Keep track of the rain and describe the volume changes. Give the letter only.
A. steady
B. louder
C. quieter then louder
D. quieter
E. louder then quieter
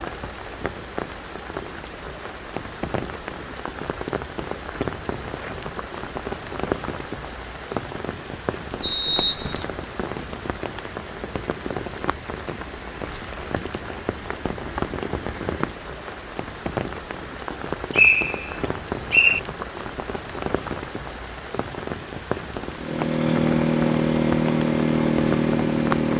A.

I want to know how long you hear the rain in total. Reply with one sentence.
You can hear the rain for 26 seconds altogether.